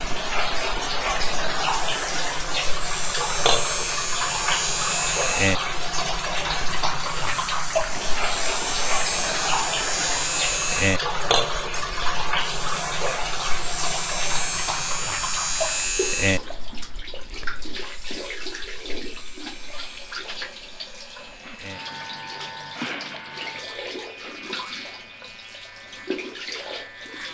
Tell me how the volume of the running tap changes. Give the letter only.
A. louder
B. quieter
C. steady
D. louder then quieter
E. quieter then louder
B.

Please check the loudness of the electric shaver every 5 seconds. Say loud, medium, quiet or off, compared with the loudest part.
loud, loud, loud, loud, quiet, quiet.